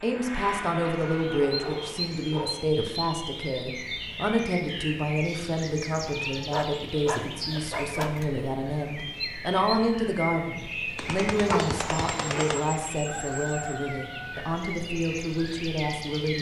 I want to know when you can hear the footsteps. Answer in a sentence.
The footsteps can't be heard in this clip.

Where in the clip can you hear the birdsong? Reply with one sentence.
The birdsong can be heard from 0.0 to 16.3 s.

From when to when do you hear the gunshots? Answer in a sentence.
The gunshots can be heard from 10.9 to 12.6 s.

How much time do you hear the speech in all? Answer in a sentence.
You can hear the speech for 16 seconds altogether.